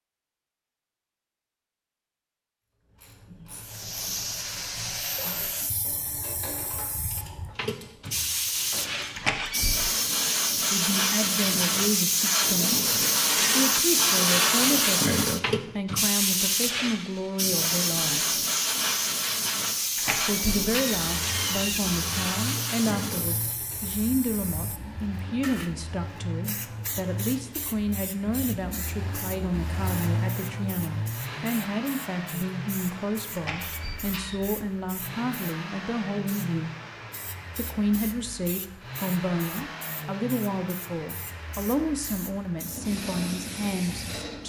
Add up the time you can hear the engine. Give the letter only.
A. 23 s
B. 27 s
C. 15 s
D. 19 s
A.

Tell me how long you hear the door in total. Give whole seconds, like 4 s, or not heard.
4 s.